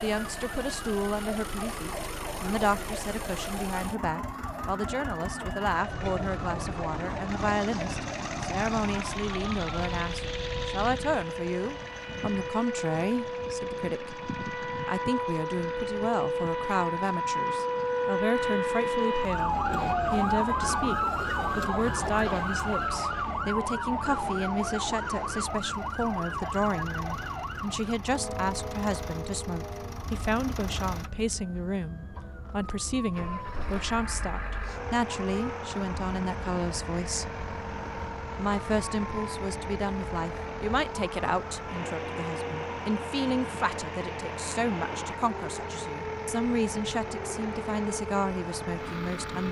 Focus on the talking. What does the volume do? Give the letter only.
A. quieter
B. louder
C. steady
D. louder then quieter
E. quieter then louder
C.